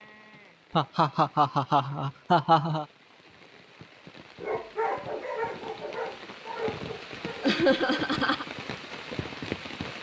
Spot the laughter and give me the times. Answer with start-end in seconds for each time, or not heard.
0.8-2.9, 7.4-8.4.